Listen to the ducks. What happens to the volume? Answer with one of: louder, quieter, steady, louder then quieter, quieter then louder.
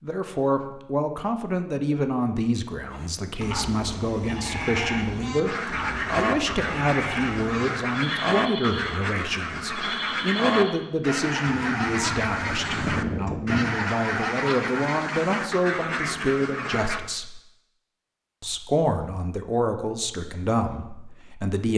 steady.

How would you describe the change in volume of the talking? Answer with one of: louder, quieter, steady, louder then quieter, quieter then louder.
steady.